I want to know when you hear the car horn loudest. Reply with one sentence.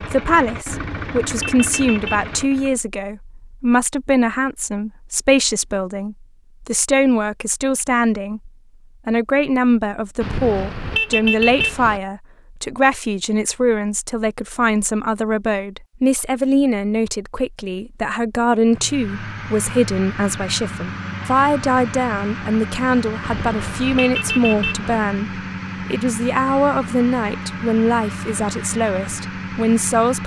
The loudest moment of the car horn is at 11 seconds.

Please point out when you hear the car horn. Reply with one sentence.
The car horn can be heard from 0.7 to 2.5 s, from 10.2 to 12.0 s and from 23.2 to 25.0 s.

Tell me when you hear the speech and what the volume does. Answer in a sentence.
The speech can be heard from 0.0 to 30.2 s, at a steady volume.